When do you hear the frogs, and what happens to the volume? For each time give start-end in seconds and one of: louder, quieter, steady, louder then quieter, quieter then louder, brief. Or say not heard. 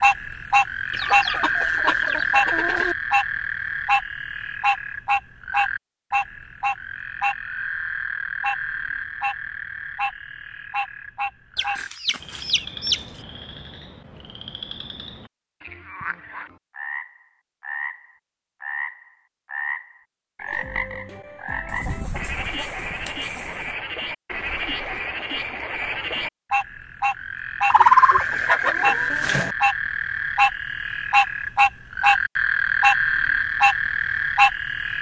0.0-34.9 quieter then louder.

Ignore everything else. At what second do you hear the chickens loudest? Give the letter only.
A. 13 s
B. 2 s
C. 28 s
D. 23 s
C.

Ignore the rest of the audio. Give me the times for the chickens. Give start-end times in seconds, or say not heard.
0.9-3.0, 11.6-13.0, 21.6-23.8, 27.7-29.6.